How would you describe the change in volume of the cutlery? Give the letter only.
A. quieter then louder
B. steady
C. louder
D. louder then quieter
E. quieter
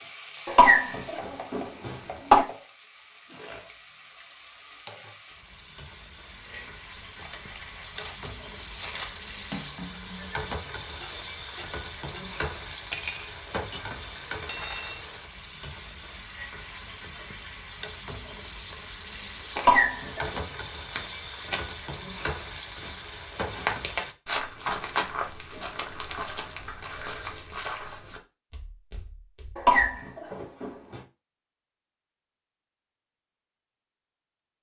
C.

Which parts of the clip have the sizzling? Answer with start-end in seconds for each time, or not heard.
0.0-24.1.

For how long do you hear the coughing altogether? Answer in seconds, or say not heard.
4 s.